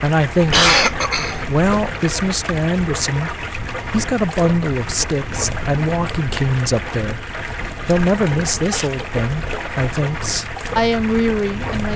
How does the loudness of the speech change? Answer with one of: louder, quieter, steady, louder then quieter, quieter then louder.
steady.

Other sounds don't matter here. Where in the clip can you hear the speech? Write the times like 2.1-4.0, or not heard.
0.0-11.9.